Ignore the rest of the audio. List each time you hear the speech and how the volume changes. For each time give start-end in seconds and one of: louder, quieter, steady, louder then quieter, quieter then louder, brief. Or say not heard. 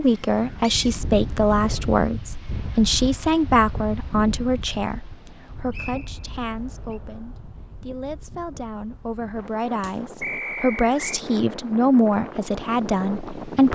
0.0-13.7 quieter then louder.